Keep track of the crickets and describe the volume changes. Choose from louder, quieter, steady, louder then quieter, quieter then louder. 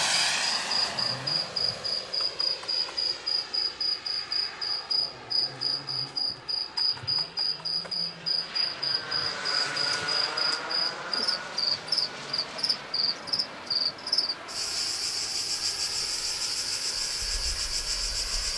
steady.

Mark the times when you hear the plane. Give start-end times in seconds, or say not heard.
0.0-18.5.